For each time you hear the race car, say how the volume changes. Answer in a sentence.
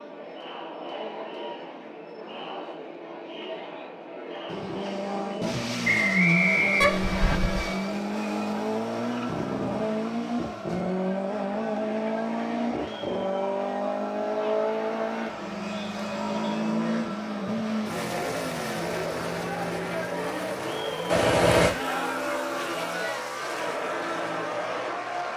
You can hear the race car from 4.5 to 25.3 s, getting quieter.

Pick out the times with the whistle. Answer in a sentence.
You can hear the whistle from 5.8 to 7.4 s.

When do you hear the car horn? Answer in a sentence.
You can hear the car horn from 6.8 to 7.7 s and from 21.1 to 21.8 s.